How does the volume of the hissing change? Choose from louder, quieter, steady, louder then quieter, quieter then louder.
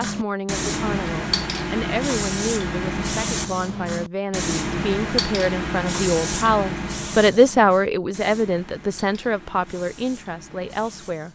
quieter.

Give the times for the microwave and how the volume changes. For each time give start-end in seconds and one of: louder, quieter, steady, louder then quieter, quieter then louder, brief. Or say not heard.
not heard.